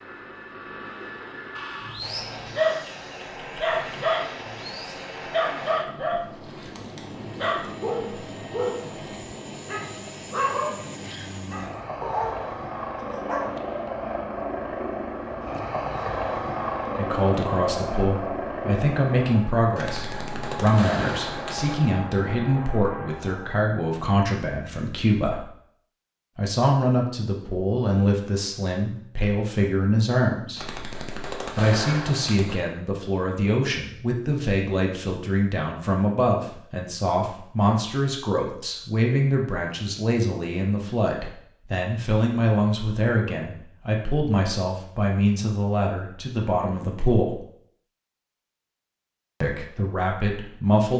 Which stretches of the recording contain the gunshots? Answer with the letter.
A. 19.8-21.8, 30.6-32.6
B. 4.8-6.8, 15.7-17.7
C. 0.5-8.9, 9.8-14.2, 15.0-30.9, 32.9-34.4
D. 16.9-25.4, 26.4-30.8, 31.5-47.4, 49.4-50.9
A.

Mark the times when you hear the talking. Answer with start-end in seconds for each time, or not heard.
16.9-25.4, 26.4-30.8, 31.5-47.4, 49.4-50.9.